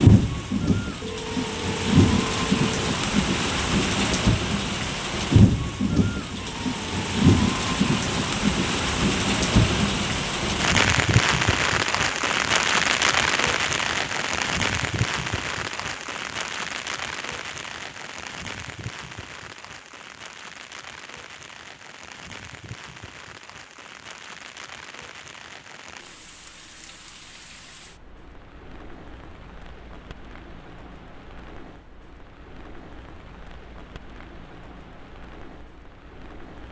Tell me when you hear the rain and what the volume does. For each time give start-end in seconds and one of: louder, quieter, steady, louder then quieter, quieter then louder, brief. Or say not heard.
0.0-36.6 quieter.